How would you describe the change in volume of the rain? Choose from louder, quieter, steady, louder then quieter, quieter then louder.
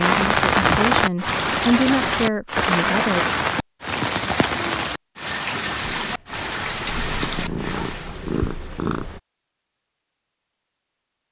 quieter.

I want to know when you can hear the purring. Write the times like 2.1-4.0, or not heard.
6.0-9.2.